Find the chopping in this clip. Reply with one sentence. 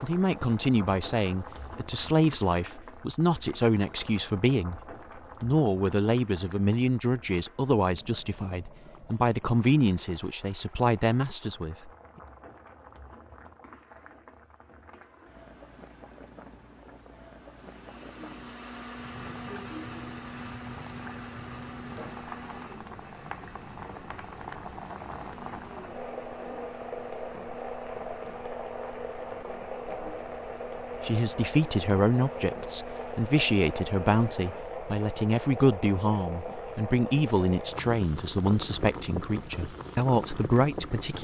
The chopping can't be heard in this clip.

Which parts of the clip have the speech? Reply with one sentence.
You can hear the speech from 0.0 to 4.8 s, from 5.4 to 11.9 s and from 31.0 to 41.1 s.